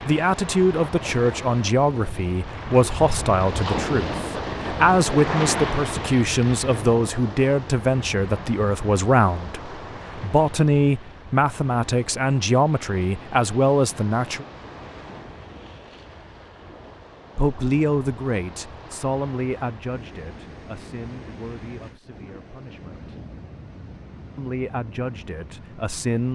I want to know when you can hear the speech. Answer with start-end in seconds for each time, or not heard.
0.1-14.4, 17.4-23.0, 24.4-26.3.